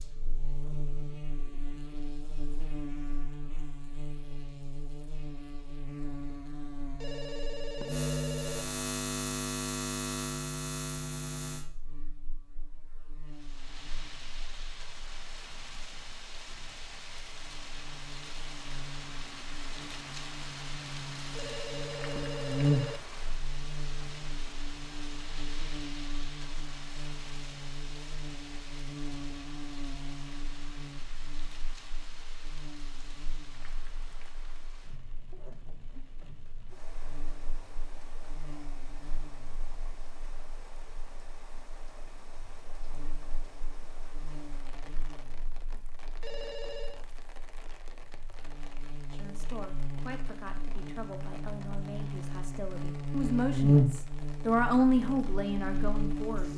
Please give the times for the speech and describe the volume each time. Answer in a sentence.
The speech can be heard from 49.1 to 56.5 s, getting louder.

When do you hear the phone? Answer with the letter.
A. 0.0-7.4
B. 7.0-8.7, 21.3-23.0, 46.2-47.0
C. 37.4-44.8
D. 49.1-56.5
B.